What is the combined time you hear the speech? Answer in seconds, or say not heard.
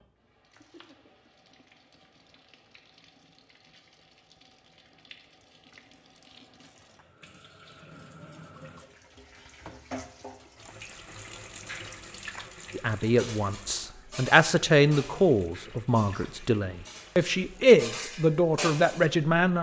7 s.